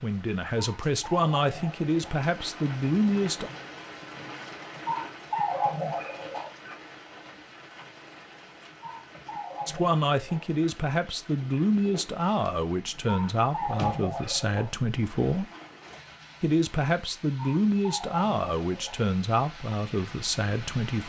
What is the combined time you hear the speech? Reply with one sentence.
The speech can be heard for 14 seconds in total.